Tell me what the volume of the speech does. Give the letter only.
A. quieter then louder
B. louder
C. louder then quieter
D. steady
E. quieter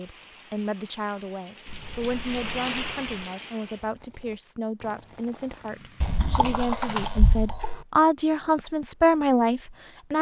B.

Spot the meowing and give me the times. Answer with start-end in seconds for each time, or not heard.
not heard.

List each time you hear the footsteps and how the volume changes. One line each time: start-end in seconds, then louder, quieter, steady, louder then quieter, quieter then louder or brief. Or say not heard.
not heard.